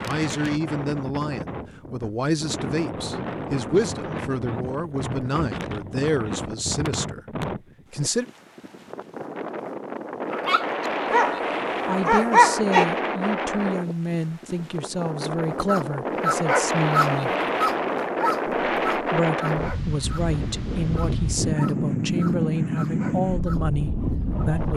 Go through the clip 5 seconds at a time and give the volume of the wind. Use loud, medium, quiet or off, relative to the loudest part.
medium, medium, loud, loud, loud.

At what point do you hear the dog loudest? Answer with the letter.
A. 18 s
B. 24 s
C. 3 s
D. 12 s
D.